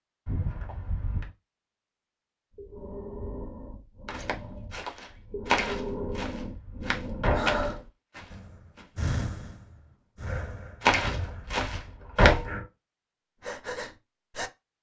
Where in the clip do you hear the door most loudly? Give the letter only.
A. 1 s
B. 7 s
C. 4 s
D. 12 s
D.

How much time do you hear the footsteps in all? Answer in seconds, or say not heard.
6 s.